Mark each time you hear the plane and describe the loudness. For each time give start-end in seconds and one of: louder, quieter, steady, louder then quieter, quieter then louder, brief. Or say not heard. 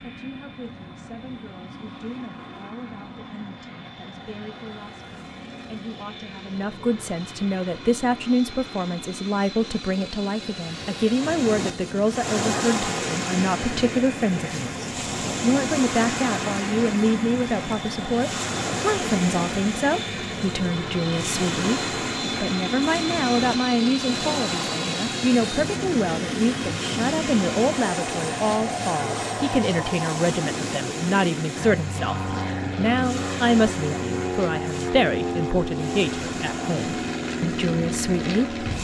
0.0-38.7 louder.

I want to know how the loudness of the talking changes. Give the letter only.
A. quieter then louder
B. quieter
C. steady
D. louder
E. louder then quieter
D.